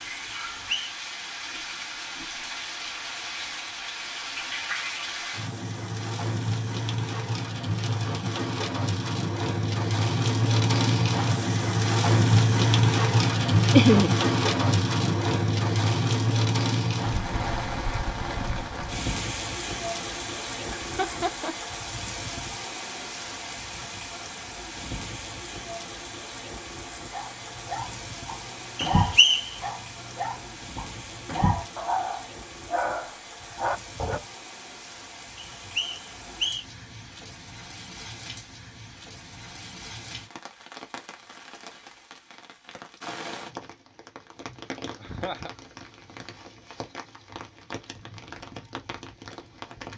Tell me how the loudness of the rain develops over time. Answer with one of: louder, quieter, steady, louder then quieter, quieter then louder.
louder then quieter.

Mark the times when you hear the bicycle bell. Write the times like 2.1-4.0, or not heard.
not heard.